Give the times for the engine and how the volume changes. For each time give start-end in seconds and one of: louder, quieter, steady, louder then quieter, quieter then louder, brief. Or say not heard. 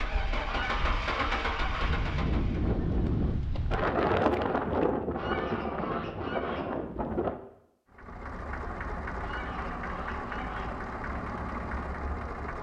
0.0-2.8 brief
7.9-12.5 steady.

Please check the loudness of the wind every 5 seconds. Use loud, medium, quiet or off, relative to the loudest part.
loud, loud, off.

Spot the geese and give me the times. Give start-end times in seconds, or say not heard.
0.5-2.0, 5.2-6.8, 9.2-10.8.